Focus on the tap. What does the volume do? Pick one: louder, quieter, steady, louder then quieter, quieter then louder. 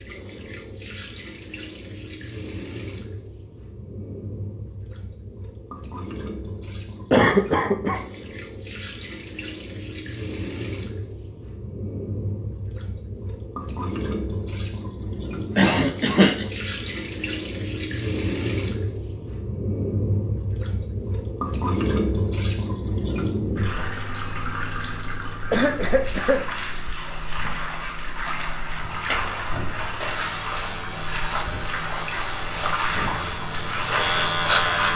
louder.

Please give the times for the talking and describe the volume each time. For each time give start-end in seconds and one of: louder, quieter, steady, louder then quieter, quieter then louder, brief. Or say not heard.
not heard.